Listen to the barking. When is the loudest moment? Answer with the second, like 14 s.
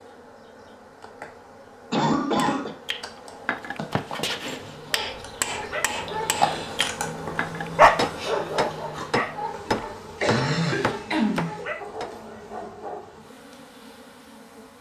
8 s.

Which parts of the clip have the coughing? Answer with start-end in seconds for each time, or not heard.
1.9-2.8, 10.2-11.7.